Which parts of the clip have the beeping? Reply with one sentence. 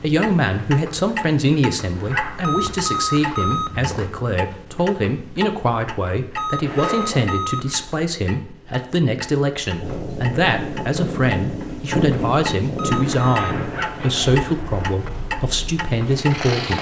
The beeping can be heard from 2.4 to 4.0 s, from 6.3 to 7.8 s and from 12.8 to 13.6 s.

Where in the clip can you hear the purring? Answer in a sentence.
You can hear the purring from 9.8 to 16.7 s.